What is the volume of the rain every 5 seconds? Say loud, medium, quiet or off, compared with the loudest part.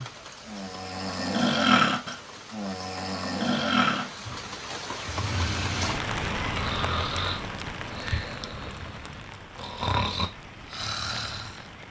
medium, loud, medium.